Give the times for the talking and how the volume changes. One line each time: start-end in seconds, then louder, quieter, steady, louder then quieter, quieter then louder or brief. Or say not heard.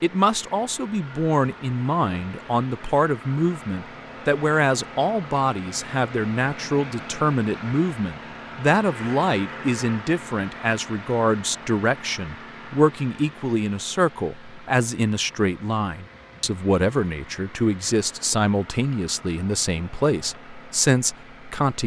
0.0-21.8 steady.